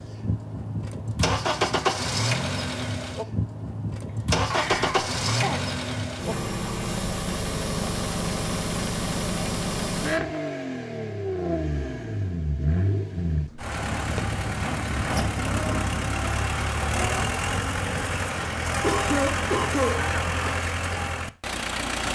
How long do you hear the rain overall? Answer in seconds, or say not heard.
not heard.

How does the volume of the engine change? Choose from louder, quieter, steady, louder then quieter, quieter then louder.
steady.